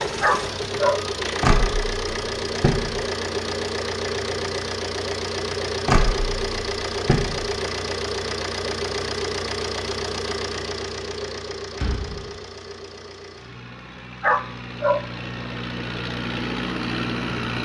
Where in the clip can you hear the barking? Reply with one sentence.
You can hear the barking from 0.2 to 1.0 s and from 14.2 to 15.1 s.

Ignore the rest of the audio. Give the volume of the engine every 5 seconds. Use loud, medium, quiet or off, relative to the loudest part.
loud, loud, medium, loud.